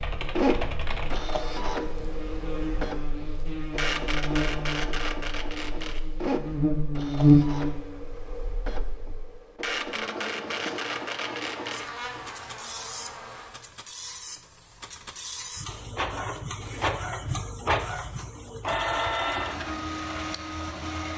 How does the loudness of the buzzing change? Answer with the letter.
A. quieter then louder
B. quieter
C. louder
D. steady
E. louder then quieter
E.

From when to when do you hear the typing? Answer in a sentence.
The typing can be heard from 0.0 to 2.9 s.